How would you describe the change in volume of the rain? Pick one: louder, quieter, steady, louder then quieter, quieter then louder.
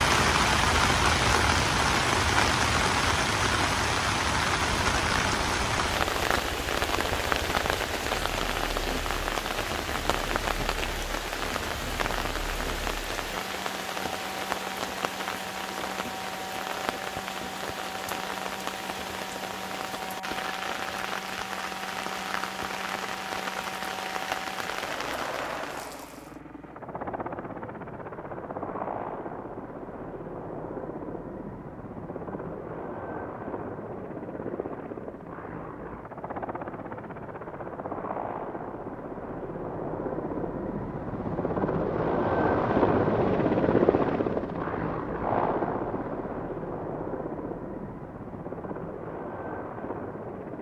quieter.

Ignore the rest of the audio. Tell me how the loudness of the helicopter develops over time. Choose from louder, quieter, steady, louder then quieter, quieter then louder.
louder.